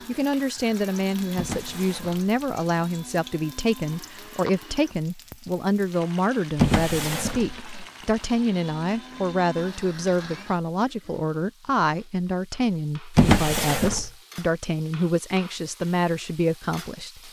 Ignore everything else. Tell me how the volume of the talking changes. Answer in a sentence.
The volume of the talking stays about the same.